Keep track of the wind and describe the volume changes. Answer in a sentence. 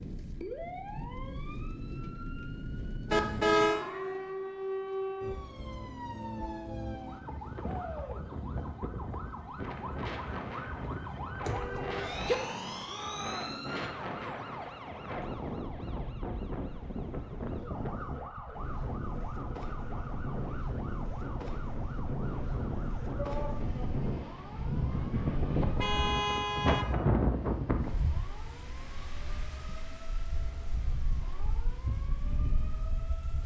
The volume of the wind goes up, then down.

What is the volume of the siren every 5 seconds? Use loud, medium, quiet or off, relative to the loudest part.
loud, loud, loud, medium, medium, quiet, quiet.